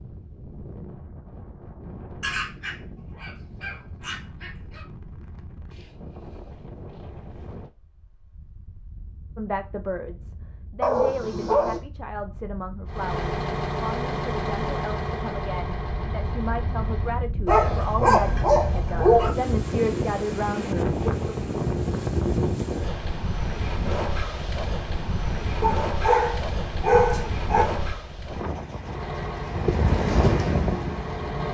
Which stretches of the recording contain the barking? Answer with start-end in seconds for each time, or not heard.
2.2-4.8, 10.8-11.8, 17.4-19.4, 25.6-27.6.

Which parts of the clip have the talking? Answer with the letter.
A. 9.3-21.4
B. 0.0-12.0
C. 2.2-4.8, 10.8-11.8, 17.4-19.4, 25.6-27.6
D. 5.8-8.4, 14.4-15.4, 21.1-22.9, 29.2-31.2
A.